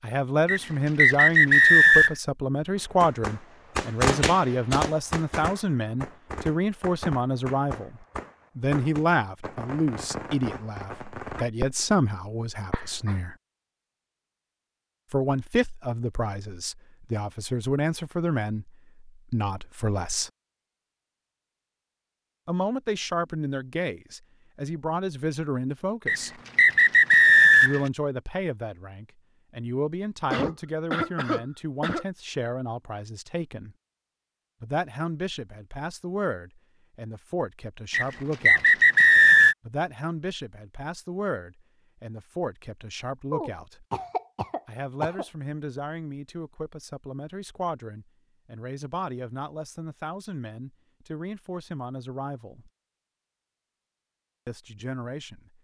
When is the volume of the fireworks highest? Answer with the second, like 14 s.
4 s.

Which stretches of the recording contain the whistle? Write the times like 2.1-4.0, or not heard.
0.5-2.1, 26.1-27.8, 37.9-39.5.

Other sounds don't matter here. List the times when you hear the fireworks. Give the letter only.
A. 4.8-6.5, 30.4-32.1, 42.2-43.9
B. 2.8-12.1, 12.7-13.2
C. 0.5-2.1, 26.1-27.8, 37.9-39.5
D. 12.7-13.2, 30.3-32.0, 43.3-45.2
B.